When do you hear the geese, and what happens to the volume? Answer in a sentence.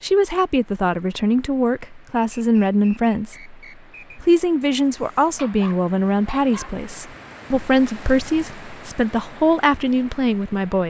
You can't hear the geese here.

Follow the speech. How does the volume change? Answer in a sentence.
The volume of the speech stays about the same.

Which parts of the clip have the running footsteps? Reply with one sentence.
You can't hear the running footsteps here.